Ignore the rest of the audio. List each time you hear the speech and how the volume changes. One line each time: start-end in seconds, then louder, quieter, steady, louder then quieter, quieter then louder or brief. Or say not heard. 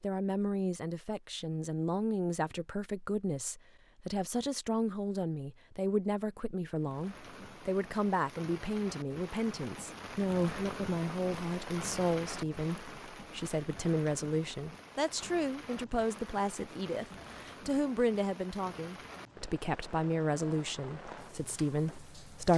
0.0-22.5 steady.